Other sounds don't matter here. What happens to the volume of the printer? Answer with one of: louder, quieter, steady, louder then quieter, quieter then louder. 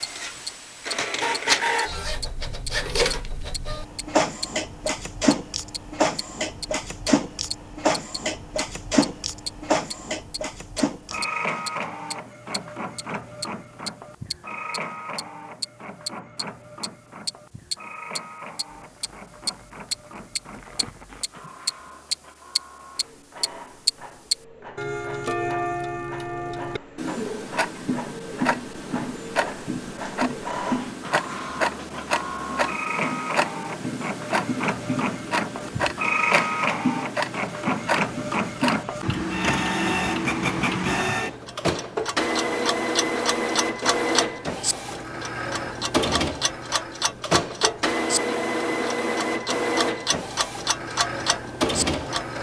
quieter then louder.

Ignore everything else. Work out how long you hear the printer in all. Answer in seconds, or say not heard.
52 s.